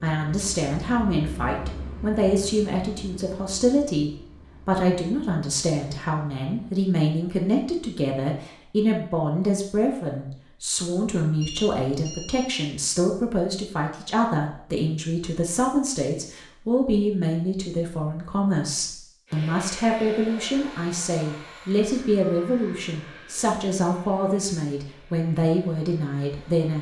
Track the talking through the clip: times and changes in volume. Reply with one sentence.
The talking can be heard from 0.0 to 26.7 s, at a steady volume.